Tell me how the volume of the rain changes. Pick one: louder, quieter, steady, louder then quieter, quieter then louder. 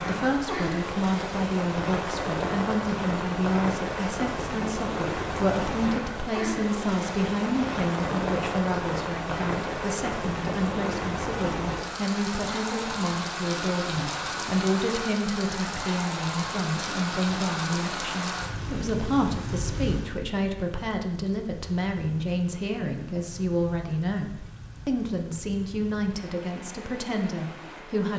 quieter.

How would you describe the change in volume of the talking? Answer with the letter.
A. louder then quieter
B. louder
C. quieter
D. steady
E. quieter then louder
D.